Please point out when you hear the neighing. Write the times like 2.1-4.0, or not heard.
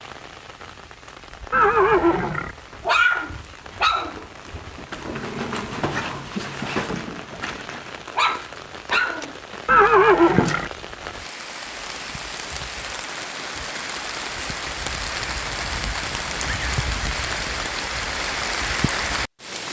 1.5-2.5, 9.7-10.7, 16.1-16.8.